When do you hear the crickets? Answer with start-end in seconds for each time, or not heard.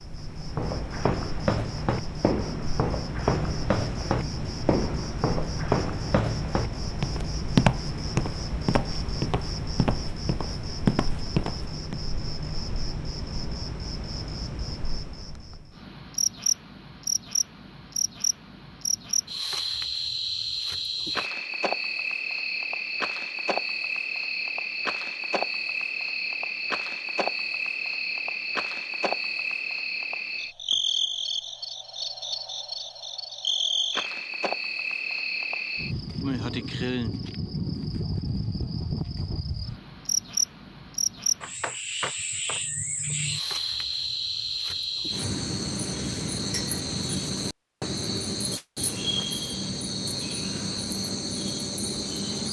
0.0-52.4.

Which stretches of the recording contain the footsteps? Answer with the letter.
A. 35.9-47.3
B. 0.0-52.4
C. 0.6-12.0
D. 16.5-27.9
C.